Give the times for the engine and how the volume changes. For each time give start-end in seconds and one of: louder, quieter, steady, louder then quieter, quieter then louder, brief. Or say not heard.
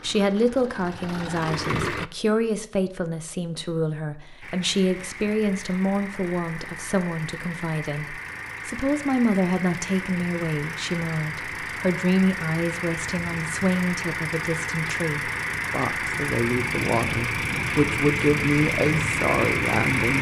0.0-2.0 brief
4.4-20.1 louder.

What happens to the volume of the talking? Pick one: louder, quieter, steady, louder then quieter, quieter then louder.
steady.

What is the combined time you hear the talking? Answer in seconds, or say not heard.
20 s.